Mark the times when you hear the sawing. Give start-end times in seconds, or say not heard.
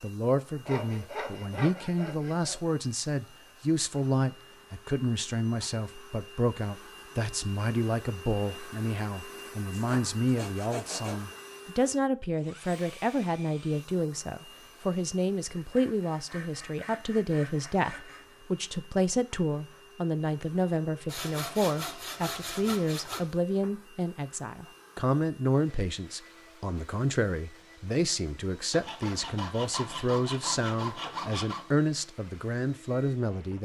0.7-2.6, 9.7-11.2, 15.4-18.4, 21.1-23.4, 28.7-31.7.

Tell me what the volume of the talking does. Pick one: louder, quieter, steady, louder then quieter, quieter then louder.
steady.